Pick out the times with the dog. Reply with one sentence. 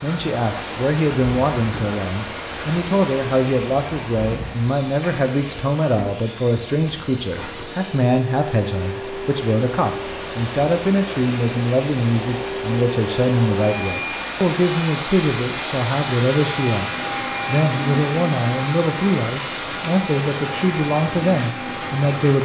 You can't hear the dog here.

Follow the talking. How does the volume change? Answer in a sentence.
The loudness of the talking stays about the same.